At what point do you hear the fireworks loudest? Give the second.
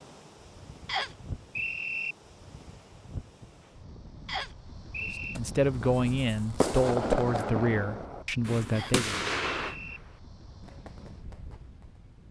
7 s.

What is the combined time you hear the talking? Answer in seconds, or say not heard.
4 s.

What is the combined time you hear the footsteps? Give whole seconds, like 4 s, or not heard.
not heard.